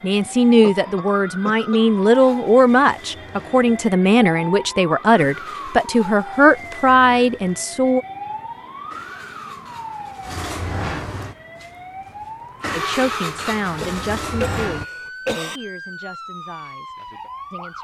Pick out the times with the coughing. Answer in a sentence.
The coughing can be heard from 0.6 to 1.8 s and from 13.6 to 15.6 s.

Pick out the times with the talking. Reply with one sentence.
You can hear the talking from 0.0 to 8.1 s and from 12.7 to 17.7 s.